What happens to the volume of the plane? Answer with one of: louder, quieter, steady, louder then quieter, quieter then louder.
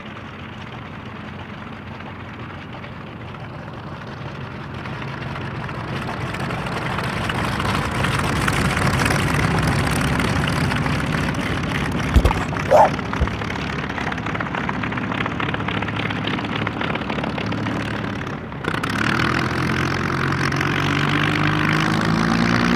louder.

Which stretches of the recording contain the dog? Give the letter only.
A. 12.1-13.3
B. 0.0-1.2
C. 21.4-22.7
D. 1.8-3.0
A.